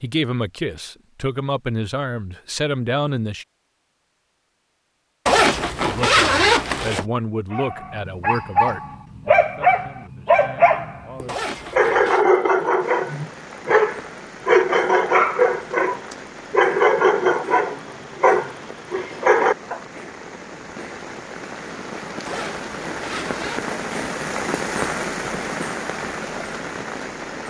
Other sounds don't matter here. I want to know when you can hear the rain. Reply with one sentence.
You can hear the rain from 12.8 to 27.4 s.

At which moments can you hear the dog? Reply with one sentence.
The dog can be heard from 7.5 to 19.8 s.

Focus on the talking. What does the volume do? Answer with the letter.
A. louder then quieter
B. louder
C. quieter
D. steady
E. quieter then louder
C.